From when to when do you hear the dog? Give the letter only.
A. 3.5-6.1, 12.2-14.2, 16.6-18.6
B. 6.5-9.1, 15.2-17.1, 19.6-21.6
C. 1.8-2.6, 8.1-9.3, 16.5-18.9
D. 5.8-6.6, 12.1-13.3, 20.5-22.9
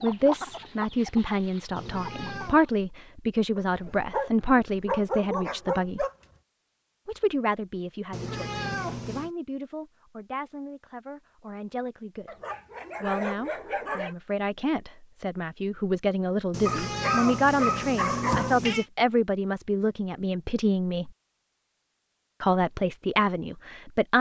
A.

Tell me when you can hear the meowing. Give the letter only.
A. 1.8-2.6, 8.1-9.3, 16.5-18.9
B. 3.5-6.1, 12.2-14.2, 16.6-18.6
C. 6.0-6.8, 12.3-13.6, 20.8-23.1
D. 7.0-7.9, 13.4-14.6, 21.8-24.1
A.